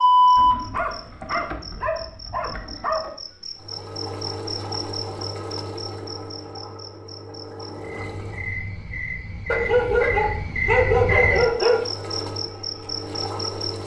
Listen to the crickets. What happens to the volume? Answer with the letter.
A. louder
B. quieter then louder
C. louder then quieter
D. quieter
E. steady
B.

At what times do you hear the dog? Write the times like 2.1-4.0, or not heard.
0.3-3.1, 9.4-11.9.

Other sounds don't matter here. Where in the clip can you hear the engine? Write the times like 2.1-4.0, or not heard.
3.5-8.6, 11.7-13.8.